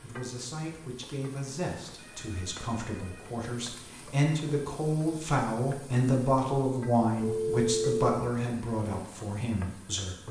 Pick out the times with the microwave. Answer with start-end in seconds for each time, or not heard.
not heard.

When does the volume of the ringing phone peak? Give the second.
8 s.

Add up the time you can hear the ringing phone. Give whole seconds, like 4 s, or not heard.
2 s.